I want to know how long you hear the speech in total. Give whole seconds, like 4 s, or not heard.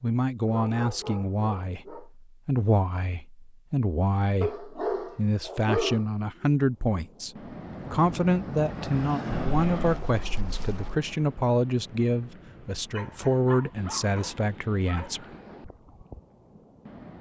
15 s.